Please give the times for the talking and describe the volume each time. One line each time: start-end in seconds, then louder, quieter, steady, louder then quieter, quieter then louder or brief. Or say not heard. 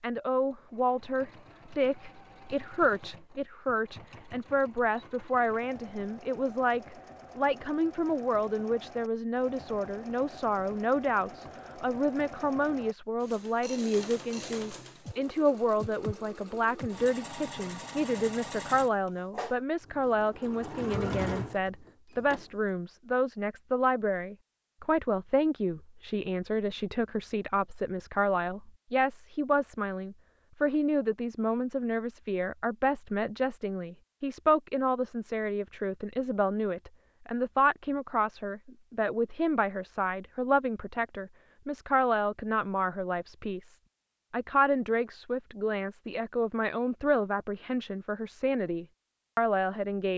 0.0-50.1 steady.